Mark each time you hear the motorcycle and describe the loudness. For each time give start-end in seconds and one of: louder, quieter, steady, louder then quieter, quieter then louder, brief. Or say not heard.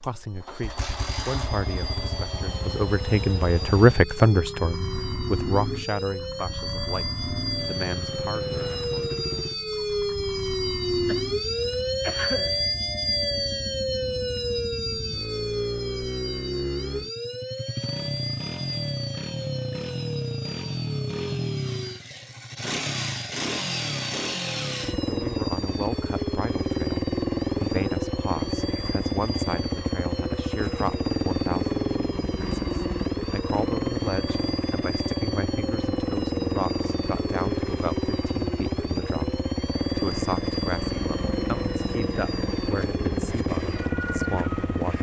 0.0-44.9 louder.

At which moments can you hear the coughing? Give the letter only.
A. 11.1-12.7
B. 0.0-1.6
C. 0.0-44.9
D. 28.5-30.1
A.